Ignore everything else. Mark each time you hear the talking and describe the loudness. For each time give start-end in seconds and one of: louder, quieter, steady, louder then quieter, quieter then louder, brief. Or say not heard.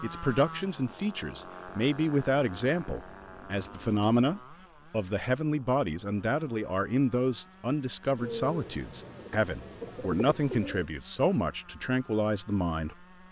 0.0-13.1 steady.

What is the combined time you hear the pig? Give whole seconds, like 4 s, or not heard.
not heard.